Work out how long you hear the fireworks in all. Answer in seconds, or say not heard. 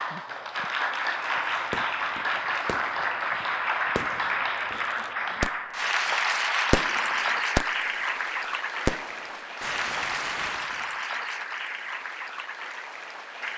7 s.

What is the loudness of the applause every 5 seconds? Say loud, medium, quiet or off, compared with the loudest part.
loud, loud, medium.